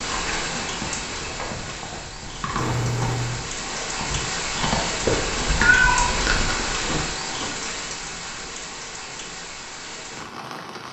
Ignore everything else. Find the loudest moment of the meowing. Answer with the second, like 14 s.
6 s.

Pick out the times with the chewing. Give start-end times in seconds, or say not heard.
0.0-7.5.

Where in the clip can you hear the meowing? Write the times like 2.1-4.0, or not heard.
2.5-3.4, 5.5-6.2.